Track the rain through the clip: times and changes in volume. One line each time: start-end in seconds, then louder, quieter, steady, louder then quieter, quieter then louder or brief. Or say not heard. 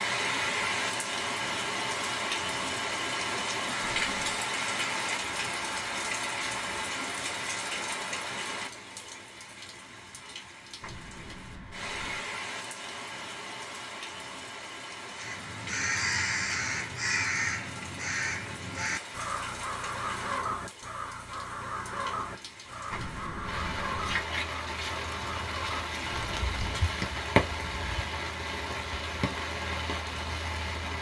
0.0-30.9 quieter then louder.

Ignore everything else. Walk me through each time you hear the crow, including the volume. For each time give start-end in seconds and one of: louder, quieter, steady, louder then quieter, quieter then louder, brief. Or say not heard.
15.1-26.9 quieter.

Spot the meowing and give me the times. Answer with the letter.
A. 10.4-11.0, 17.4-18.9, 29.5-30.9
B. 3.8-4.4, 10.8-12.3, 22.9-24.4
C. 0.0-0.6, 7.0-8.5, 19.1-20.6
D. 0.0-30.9
B.